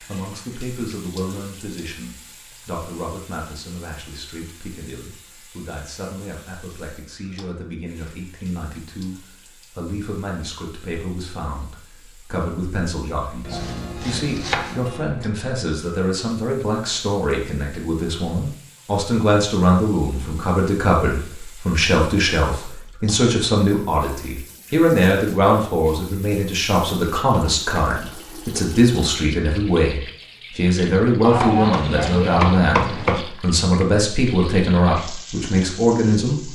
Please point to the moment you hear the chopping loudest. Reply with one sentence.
The loudest moment of the chopping is at 32 seconds.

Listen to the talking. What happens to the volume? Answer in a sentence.
The volume of the talking goes up.